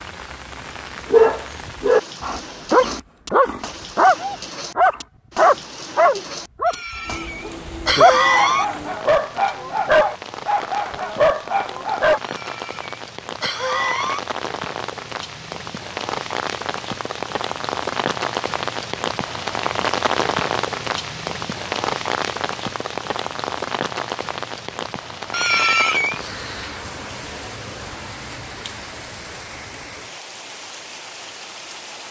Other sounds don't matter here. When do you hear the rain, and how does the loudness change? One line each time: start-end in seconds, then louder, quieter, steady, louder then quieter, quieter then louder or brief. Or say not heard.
0.0-32.0 louder then quieter.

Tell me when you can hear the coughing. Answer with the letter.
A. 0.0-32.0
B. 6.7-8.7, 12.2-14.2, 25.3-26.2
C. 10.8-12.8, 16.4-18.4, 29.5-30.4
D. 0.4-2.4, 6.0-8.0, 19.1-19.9
B.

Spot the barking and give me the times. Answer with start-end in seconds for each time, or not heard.
1.1-12.2.